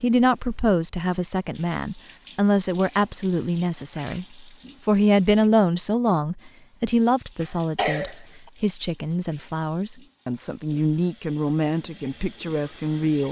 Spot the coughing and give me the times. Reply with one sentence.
The coughing can be heard from 7.4 to 8.5 s.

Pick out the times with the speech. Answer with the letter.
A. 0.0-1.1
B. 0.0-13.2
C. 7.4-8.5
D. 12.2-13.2
B.